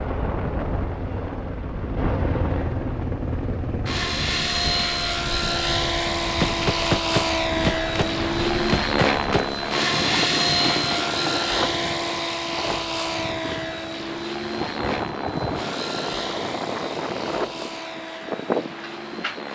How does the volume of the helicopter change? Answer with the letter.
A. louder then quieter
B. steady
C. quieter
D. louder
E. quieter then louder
A.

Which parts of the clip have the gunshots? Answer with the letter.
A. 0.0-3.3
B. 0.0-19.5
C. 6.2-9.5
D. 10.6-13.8
C.